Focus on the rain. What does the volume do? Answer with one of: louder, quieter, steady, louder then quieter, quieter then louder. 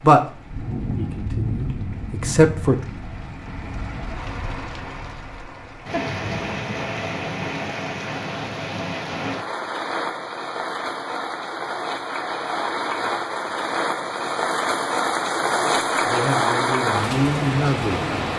louder.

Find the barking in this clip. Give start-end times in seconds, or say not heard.
not heard.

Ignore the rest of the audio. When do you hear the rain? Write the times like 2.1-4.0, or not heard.
0.0-18.3.